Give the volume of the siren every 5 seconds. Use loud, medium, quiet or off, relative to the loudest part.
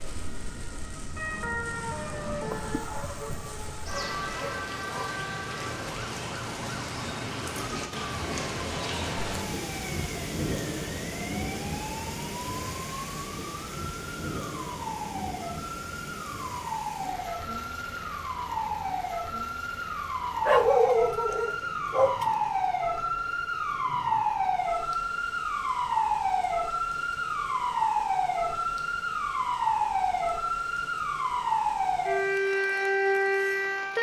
medium, quiet, quiet, medium, loud, loud, loud.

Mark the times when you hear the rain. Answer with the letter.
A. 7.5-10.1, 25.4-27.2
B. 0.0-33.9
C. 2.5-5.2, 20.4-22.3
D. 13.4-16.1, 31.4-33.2
B.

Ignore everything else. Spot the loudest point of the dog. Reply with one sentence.
The loudest moment of the dog is at 21 seconds.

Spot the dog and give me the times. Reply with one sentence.
The dog can be heard from 2.5 to 5.2 s and from 20.4 to 22.3 s.